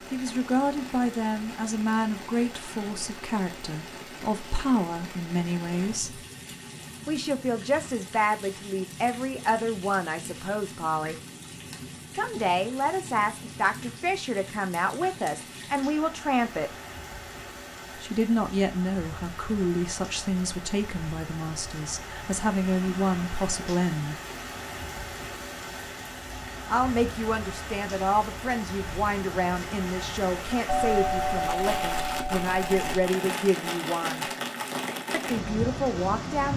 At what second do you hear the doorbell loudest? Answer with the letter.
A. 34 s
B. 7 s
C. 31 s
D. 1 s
C.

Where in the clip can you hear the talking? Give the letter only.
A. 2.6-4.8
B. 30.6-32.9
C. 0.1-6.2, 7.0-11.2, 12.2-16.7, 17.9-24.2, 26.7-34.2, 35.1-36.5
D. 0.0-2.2
C.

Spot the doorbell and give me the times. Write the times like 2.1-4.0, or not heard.
30.6-32.9.